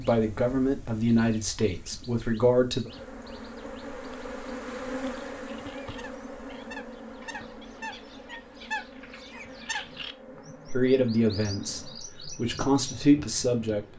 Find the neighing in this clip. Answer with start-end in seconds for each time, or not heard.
not heard.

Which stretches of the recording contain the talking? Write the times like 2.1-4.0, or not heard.
0.0-2.9, 10.7-13.9.